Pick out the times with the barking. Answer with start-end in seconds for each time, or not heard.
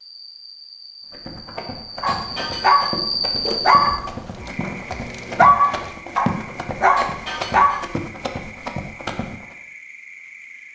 2.0-7.8.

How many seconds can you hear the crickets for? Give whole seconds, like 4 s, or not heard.
11 s.